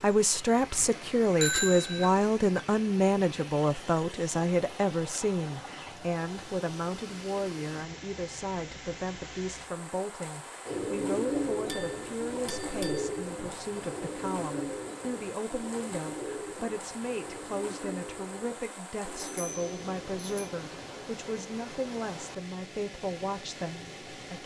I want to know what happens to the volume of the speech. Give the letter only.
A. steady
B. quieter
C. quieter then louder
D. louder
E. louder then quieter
B.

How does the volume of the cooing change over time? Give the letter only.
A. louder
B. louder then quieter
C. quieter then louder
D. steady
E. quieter
E.